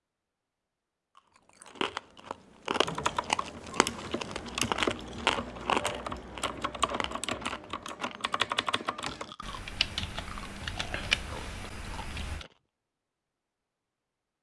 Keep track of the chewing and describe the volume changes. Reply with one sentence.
The volume of the chewing goes down.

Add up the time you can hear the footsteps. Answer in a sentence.
You can't hear the footsteps here.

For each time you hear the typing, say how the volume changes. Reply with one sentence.
You can hear the typing from 2.8 to 12.4 s, at a steady volume.